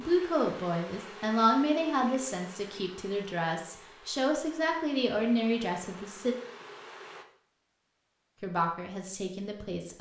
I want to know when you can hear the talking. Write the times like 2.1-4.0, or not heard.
0.0-6.3, 8.4-9.9.